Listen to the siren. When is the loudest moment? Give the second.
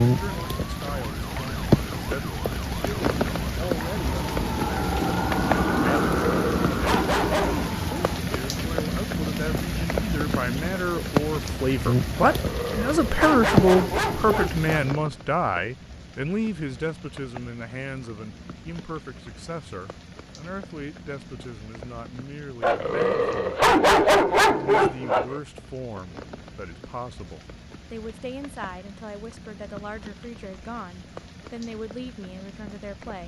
6 s.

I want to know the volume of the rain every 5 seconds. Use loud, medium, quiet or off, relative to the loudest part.
loud, loud, loud, quiet, quiet, quiet, quiet.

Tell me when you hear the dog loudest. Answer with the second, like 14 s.
24 s.